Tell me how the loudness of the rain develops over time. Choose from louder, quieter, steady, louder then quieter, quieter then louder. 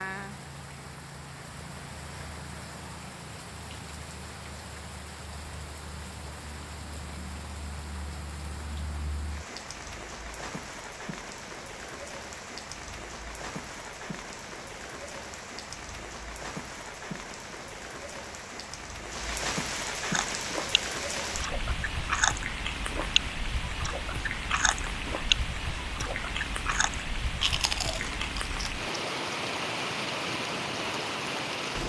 louder.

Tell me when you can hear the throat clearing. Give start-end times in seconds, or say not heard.
not heard.